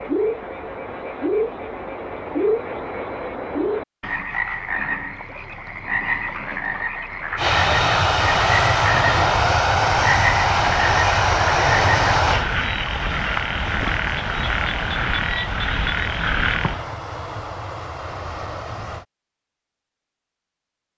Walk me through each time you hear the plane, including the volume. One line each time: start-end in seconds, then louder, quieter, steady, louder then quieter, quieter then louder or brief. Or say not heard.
7.3-19.1 quieter.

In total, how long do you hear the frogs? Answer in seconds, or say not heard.
17 s.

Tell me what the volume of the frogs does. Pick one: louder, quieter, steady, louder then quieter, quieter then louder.
steady.